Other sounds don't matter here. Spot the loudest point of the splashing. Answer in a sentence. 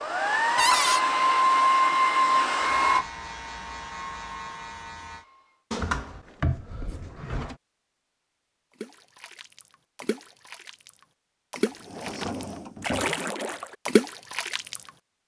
The loudest moment of the splashing is at 14 seconds.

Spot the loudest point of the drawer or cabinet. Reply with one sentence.
The volume of the drawer or cabinet peaks at 1 second.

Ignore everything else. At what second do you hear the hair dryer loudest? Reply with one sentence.
The volume of the hair dryer peaks at 2 seconds.